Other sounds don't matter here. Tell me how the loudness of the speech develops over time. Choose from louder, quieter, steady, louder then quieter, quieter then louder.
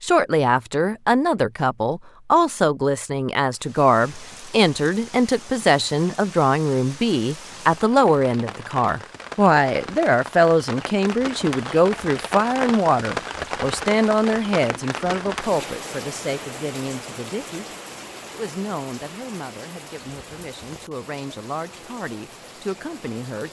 quieter.